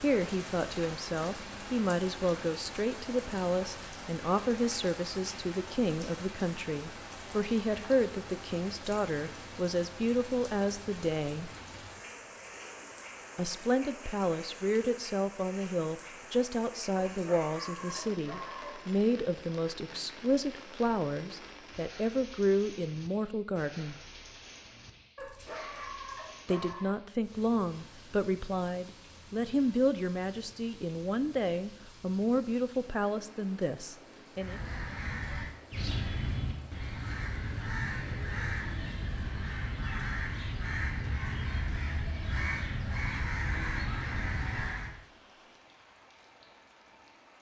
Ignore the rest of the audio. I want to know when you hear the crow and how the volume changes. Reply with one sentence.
You can hear the crow from 34.4 to 45.0 s, at a steady volume.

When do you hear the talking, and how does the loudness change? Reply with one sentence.
You can hear the talking from 0.0 to 11.5 s, at a steady volume; from 13.3 to 23.9 s, at a steady volume; and from 26.4 to 34.6 s, at a steady volume.